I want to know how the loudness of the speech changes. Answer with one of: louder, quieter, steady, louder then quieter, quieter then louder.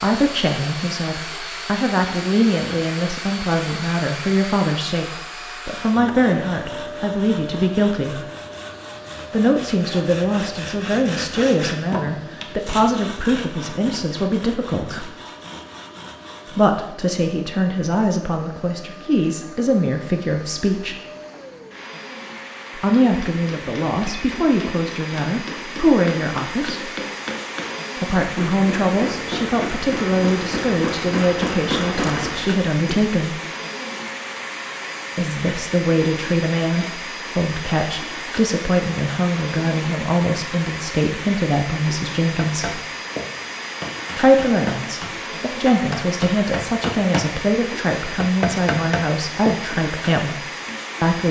steady.